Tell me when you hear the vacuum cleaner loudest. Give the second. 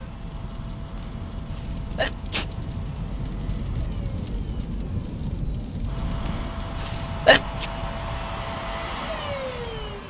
9 s.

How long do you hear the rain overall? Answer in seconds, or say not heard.
10 s.